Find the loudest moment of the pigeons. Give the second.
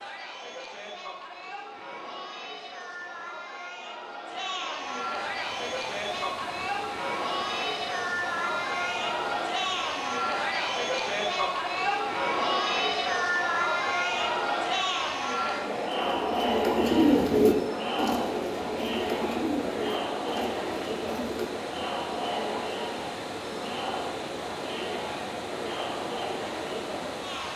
17 s.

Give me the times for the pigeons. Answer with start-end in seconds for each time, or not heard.
15.9-21.6.